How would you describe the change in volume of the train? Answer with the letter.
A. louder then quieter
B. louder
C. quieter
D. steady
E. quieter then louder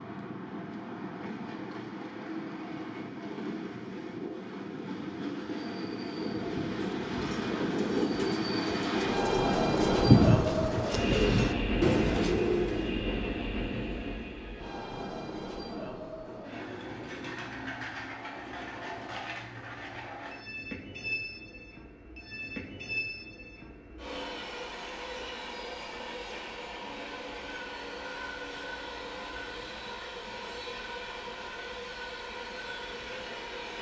A.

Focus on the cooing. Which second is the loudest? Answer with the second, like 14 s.
10 s.